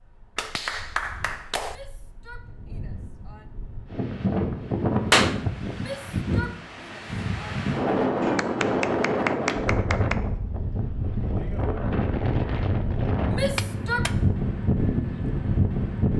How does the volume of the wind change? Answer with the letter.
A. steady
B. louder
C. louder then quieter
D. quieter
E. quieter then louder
B.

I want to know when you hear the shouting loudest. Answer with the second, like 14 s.
14 s.